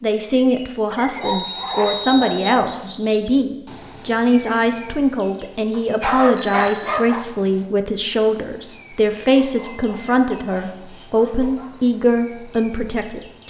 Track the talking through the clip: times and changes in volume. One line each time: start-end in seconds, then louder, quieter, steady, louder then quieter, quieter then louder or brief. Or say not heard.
0.0-13.4 steady.